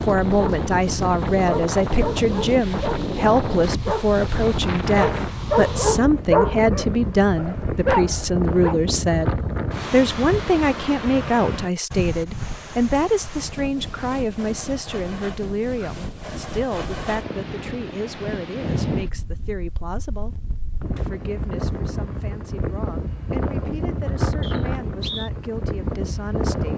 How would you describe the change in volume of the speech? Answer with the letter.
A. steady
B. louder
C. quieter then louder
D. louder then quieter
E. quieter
E.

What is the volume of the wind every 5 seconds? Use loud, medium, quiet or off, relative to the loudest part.
loud, loud, medium, medium, loud, loud.